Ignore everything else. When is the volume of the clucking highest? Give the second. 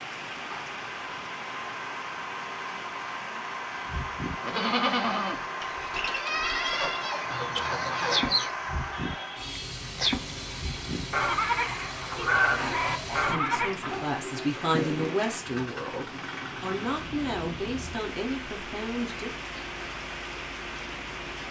8 s.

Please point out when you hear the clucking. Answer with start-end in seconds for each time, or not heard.
6.7-8.5, 12.2-14.1.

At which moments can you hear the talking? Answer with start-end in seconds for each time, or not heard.
12.6-19.4.